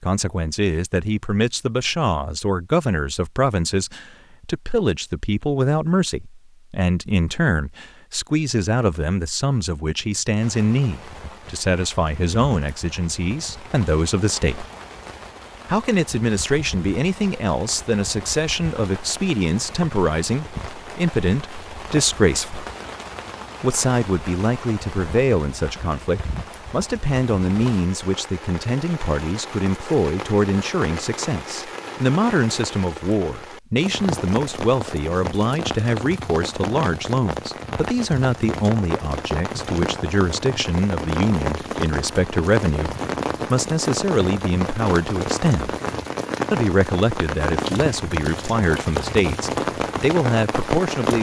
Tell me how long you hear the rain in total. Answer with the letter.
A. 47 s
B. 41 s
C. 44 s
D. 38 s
B.